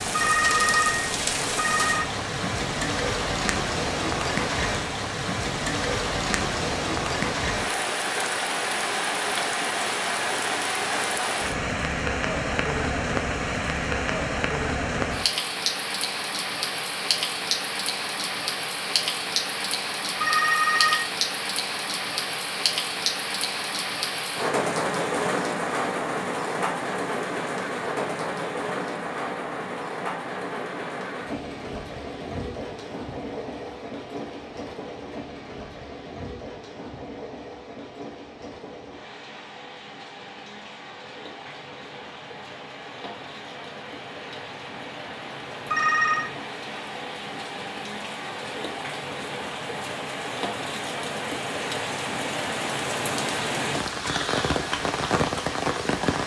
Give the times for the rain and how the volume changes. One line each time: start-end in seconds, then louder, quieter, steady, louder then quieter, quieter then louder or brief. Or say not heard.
0.0-56.2 quieter then louder.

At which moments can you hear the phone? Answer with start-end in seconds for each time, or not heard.
0.1-2.0, 20.2-21.1, 45.7-46.3.